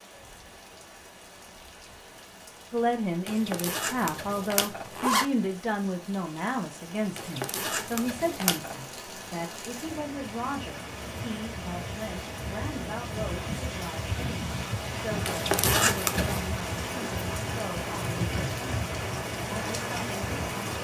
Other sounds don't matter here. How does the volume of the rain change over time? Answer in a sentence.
The loudness of the rain goes up.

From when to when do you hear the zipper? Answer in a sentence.
You can hear the zipper from 3.2 to 5.2 s, from 7.2 to 8.8 s and from 15.2 to 16.4 s.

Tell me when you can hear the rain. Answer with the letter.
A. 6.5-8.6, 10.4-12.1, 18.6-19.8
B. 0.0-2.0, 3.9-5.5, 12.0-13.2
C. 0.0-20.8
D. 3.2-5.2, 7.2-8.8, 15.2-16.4
C.